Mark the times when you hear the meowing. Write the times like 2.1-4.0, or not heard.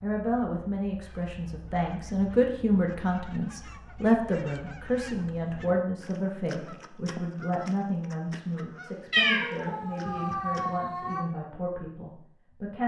9.1-11.2.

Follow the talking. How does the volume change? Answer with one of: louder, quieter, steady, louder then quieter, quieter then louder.
quieter.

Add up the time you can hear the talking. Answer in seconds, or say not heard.
13 s.